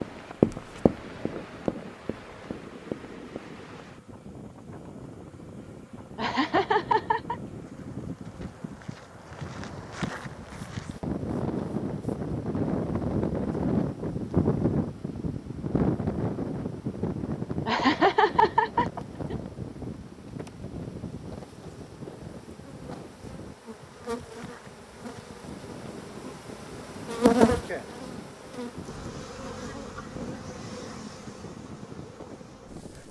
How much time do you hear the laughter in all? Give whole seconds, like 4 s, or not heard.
3 s.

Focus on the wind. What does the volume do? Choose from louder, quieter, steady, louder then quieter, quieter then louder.
louder then quieter.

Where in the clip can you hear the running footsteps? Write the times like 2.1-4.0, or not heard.
0.0-3.4.